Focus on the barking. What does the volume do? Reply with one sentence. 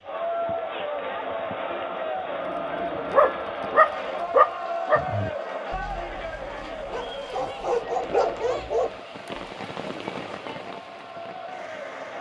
The loudness of the barking goes down, then up.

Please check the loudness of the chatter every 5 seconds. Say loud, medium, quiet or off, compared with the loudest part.
loud, medium, medium.